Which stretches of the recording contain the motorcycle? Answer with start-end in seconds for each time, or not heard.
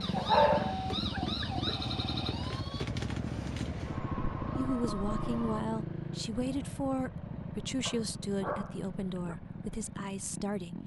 0.0-10.8.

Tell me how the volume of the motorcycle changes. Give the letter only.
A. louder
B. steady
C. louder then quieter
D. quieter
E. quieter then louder
D.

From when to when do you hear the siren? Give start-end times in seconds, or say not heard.
0.0-5.7.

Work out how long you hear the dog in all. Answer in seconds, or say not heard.
3 s.